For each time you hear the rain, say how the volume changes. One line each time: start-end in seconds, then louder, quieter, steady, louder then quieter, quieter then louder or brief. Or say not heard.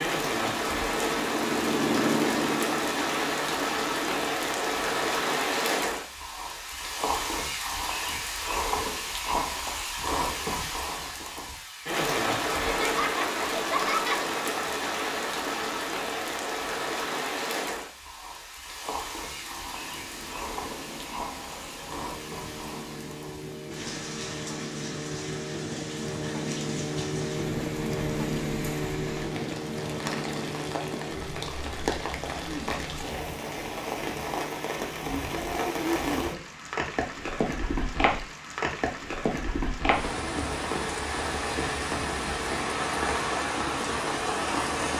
0.0-44.9 quieter then louder.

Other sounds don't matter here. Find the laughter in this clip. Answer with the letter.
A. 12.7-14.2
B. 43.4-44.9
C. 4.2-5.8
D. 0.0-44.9
A.